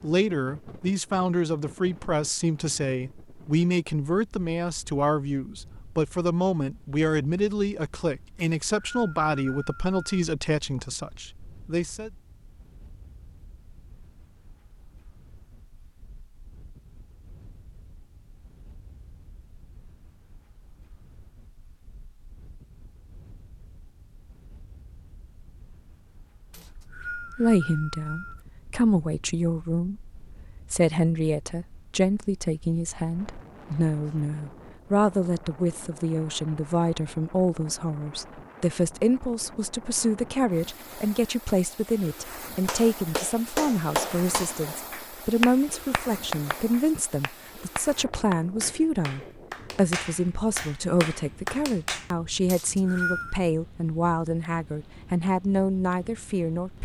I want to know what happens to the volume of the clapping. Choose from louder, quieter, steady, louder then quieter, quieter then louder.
quieter then louder.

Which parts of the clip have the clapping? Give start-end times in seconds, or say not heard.
42.6-52.0.